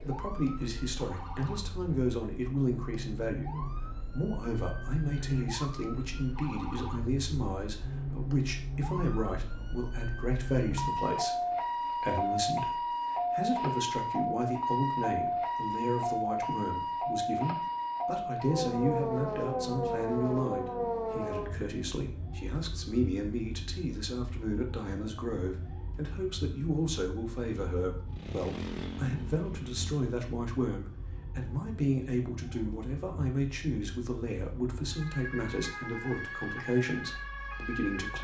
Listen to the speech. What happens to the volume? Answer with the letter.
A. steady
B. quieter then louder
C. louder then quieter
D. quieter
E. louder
A.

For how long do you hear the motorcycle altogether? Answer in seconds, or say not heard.
2 s.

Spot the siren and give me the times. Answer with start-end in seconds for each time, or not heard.
0.0-38.1.